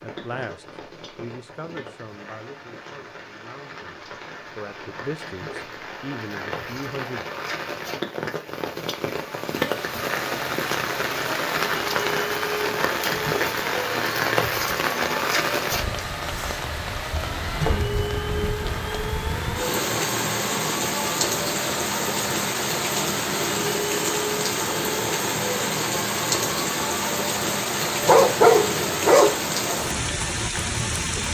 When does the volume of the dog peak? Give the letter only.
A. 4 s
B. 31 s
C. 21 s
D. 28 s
D.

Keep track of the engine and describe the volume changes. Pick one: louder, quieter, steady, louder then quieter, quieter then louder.
steady.